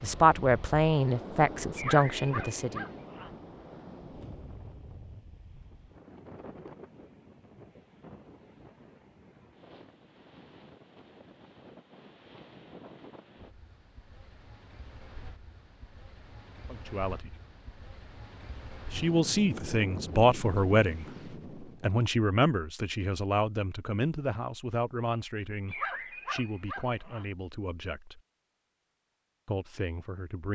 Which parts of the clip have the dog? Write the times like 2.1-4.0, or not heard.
1.8-3.3, 25.6-27.2.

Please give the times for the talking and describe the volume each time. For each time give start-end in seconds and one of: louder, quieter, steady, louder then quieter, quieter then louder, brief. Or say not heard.
0.0-2.9 brief
16.6-17.3 brief
18.9-28.2 quieter
29.4-30.5 brief.